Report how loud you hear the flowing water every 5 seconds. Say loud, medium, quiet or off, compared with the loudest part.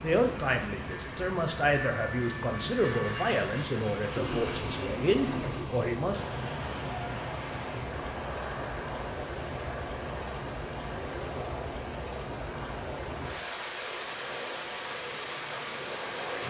medium, loud, loud, loud.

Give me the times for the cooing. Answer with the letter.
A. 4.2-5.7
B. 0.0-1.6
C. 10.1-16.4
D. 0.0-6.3
A.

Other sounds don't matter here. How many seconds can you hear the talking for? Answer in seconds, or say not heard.
6 s.